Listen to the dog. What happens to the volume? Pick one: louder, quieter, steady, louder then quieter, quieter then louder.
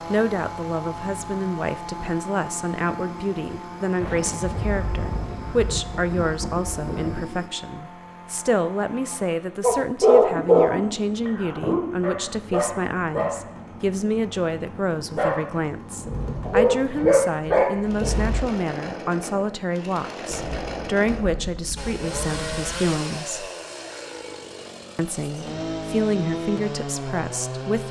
quieter then louder.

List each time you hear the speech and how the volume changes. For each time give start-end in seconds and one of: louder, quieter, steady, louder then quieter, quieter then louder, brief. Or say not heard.
0.1-23.5 steady
24.9-27.8 brief.